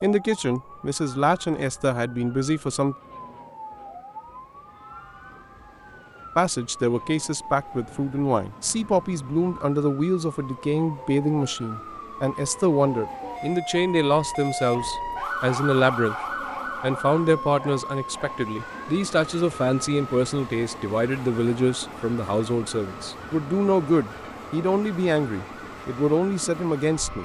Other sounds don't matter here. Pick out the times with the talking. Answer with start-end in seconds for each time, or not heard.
0.0-3.0, 6.3-16.1, 16.8-27.2.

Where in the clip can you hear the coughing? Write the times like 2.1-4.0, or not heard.
not heard.